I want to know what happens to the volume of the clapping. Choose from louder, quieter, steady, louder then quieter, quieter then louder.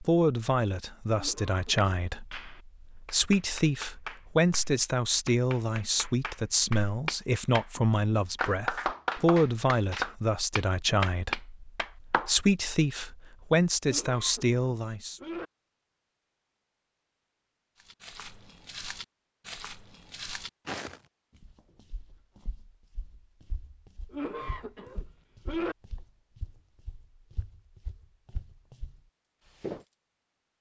louder.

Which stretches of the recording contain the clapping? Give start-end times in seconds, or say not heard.
1.8-7.7, 8.3-12.3.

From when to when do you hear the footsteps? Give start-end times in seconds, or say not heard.
17.8-29.9.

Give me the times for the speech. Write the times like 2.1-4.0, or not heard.
0.0-15.2.